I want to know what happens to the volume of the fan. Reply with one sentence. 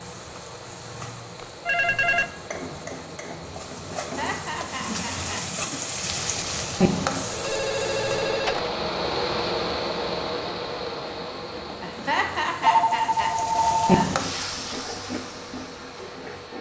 The loudness of the fan goes up, then down.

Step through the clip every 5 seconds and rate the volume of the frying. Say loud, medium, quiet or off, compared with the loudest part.
medium, loud, loud, medium.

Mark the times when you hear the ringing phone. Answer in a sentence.
The ringing phone can be heard from 1.4 to 2.3 s, from 7.3 to 8.7 s and from 11.5 to 14.1 s.